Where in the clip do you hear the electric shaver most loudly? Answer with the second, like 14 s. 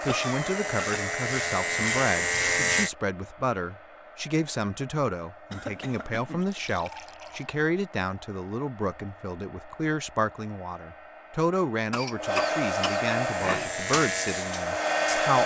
2 s.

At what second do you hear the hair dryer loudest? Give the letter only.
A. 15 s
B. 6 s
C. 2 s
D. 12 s
A.